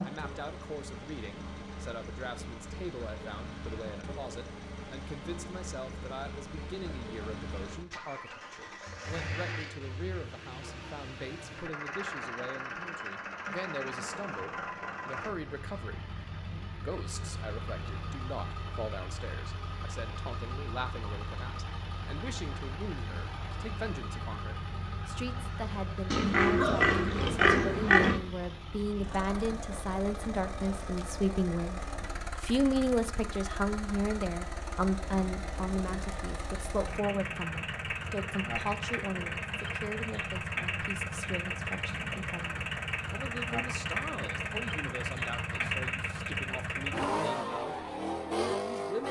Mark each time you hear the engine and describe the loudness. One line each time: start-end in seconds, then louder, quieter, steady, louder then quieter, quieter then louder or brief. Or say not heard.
0.0-49.0 louder.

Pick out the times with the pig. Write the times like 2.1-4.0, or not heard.
26.1-28.2.